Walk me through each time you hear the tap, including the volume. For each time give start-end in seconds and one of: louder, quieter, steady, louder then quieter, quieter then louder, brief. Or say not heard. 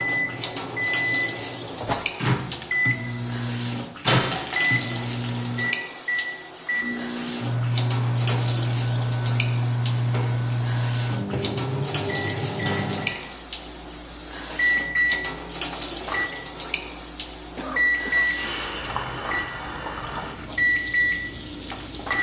0.0-22.1 steady.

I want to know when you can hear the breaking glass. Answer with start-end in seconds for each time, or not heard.
4.0-5.4, 12.7-13.3.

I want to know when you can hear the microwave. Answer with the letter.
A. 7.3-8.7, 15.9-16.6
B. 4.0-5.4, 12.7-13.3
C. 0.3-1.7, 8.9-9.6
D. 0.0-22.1
D.